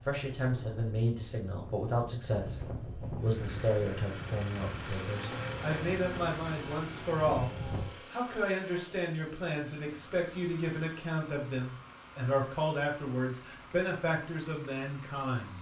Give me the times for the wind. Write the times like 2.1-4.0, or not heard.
0.0-7.9.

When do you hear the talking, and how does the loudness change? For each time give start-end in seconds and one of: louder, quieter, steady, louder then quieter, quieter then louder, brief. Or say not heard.
0.0-15.5 steady.